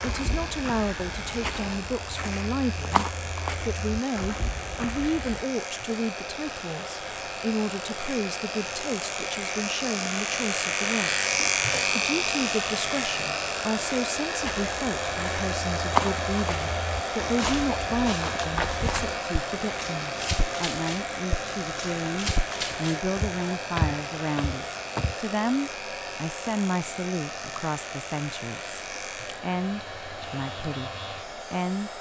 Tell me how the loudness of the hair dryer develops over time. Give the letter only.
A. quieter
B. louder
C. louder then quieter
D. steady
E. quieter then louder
C.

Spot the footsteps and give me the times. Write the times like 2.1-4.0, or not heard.
0.0-5.5, 14.4-25.1.